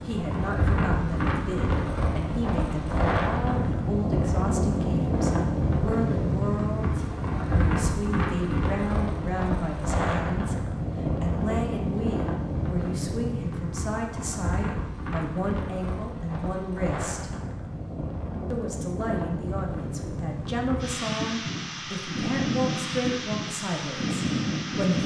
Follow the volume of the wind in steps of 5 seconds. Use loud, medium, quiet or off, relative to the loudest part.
loud, loud, loud, medium, loud.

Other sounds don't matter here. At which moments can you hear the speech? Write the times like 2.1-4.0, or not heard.
0.0-17.3, 18.5-25.0.